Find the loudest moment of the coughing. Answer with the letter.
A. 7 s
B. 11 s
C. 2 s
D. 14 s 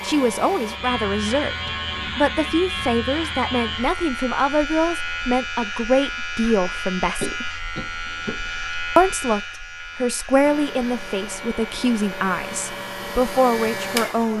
A.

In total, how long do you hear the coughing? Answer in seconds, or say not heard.
2 s.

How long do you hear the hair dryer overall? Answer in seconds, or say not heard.
6 s.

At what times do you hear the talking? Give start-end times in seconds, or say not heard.
0.0-7.5, 8.9-14.3.